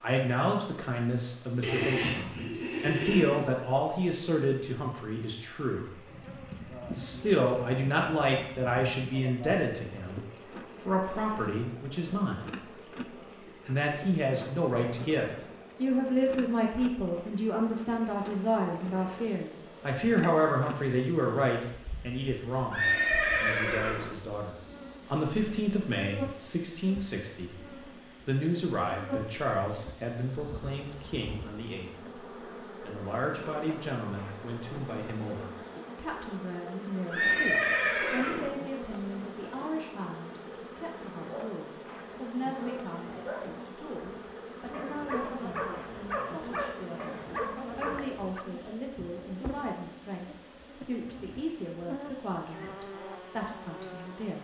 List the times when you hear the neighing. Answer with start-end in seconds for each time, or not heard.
1.6-3.4, 22.7-24.1, 37.1-38.5.